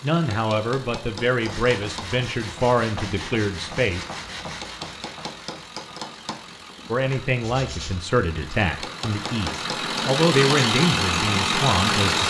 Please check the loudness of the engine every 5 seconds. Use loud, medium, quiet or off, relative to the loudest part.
quiet, quiet, loud.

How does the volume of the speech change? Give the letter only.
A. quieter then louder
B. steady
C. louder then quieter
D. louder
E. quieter
B.